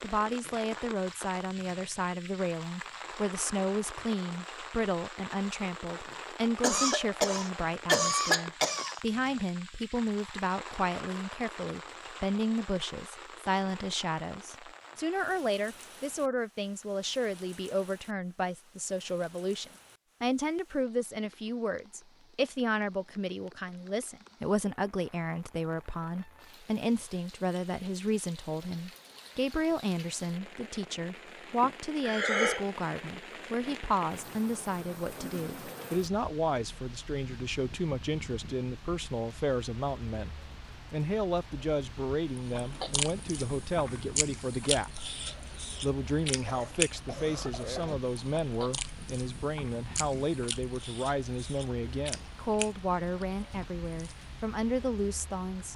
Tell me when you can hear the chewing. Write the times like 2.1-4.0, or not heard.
42.4-54.2.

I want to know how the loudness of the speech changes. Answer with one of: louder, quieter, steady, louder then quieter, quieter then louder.
steady.